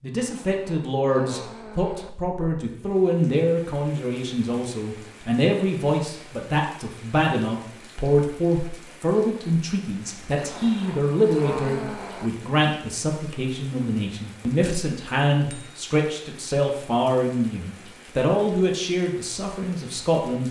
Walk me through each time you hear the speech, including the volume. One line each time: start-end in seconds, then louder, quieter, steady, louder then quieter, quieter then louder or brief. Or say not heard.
0.0-20.4 steady.